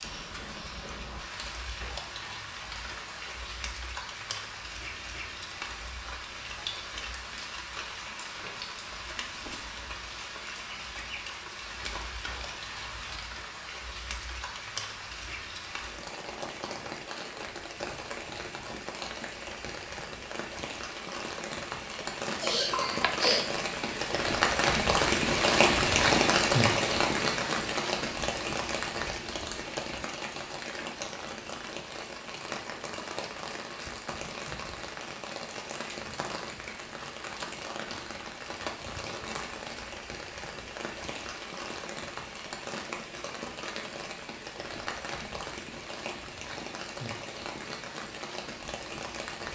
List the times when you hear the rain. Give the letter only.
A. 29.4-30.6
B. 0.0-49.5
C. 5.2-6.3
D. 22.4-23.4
B.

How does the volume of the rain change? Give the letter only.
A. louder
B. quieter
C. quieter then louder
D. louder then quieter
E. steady
D.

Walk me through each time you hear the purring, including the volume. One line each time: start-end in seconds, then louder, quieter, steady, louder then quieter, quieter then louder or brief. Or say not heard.
not heard.